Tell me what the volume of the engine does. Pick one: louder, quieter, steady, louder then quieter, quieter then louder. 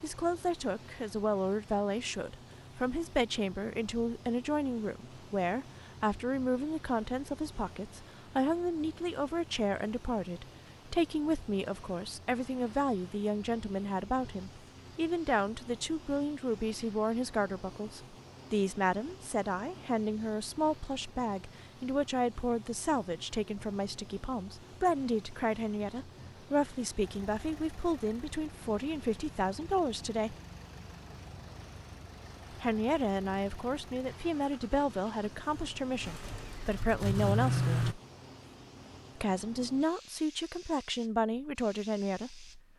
louder.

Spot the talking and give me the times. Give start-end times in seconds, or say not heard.
0.0-30.4, 32.5-38.0, 39.1-42.6.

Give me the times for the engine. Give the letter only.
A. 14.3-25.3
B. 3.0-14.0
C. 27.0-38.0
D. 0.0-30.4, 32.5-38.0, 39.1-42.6
C.